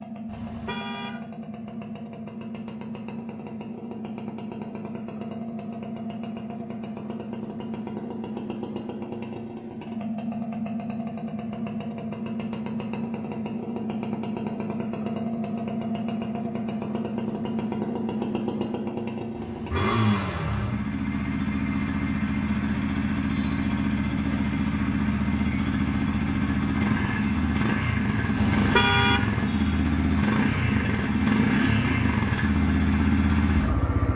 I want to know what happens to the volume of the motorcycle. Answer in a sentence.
The loudness of the motorcycle goes up.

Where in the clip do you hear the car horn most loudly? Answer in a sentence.
The volume of the car horn peaks at 29 seconds.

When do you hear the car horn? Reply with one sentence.
You can hear the car horn from 0.2 to 1.2 s, from 19.4 to 20.2 s and from 28.4 to 29.2 s.